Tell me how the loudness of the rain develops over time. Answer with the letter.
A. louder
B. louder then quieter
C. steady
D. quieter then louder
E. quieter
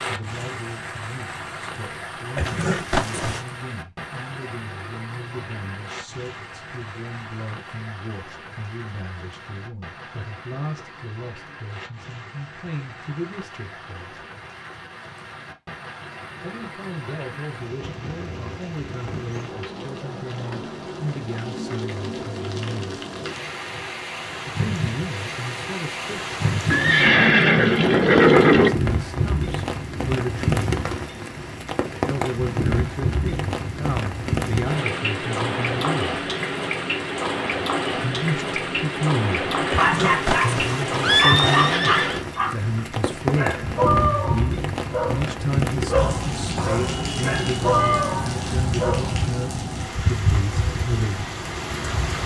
A.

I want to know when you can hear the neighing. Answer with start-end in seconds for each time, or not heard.
2.4-3.4, 26.7-28.7, 39.7-42.2.